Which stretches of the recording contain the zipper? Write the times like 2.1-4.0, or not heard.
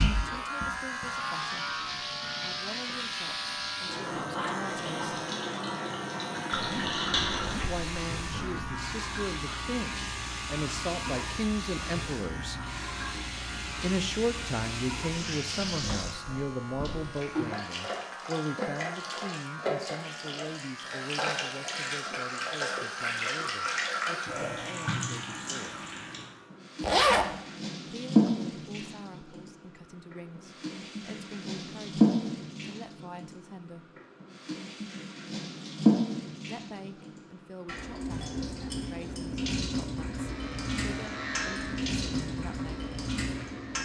6.5-8.8, 26.8-27.4.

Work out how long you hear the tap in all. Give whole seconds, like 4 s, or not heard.
44 s.